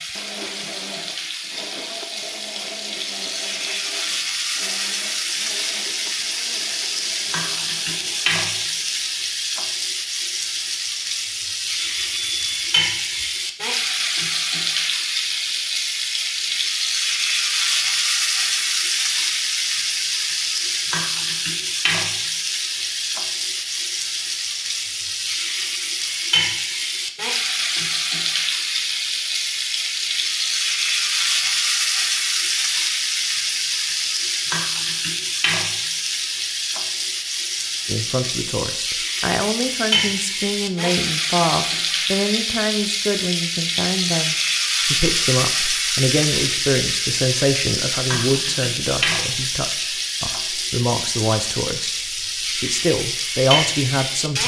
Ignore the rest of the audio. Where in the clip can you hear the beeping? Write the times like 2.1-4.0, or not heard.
11.8-13.3.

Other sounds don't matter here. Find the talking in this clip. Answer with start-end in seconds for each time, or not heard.
37.9-54.4.